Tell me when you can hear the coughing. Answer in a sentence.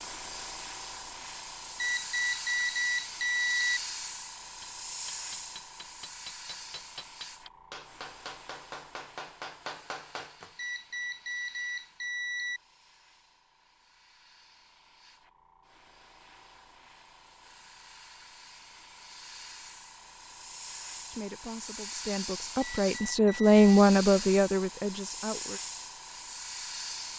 The coughing can't be heard in this clip.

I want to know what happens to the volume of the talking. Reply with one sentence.
The loudness of the talking goes up, then down.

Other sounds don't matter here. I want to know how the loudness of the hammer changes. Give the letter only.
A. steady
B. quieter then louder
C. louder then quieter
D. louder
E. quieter
D.